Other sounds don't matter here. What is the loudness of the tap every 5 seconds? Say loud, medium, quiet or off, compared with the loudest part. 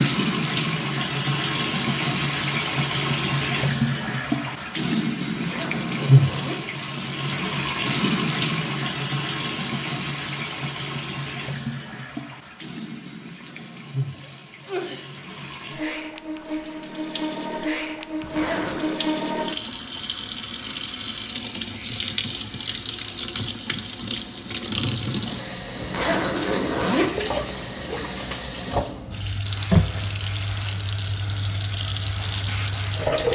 loud, loud, medium, medium, loud, loud, loud.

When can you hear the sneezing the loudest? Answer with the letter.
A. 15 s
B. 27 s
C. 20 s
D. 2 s
A.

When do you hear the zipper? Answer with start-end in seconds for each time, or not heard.
5.3-6.6, 18.2-19.1, 25.8-28.2.